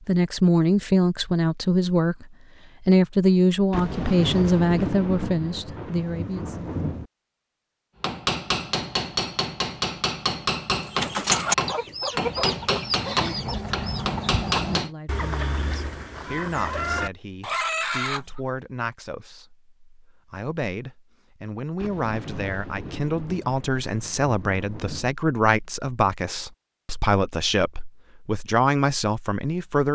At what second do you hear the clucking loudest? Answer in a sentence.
The volume of the clucking peaks at 11 seconds.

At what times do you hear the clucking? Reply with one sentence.
The clucking can be heard from 10.8 to 18.4 s.